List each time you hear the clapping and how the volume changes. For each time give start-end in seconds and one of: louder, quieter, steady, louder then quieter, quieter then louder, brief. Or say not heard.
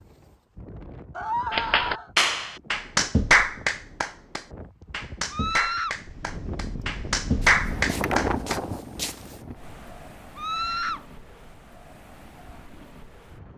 1.5-8.6 quieter then louder.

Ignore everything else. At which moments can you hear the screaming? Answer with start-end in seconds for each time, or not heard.
1.1-2.1, 5.3-6.0, 10.3-11.1.